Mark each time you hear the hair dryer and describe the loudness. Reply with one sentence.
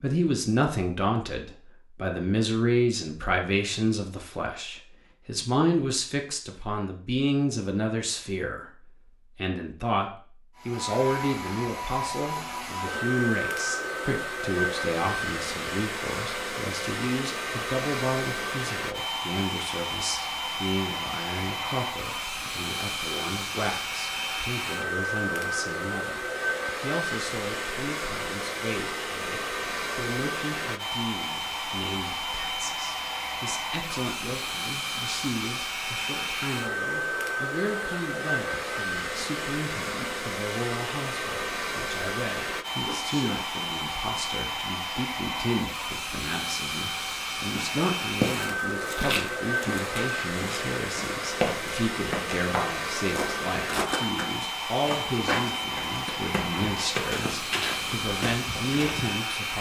The hair dryer can be heard from 10.6 to 59.5 s, at a steady volume.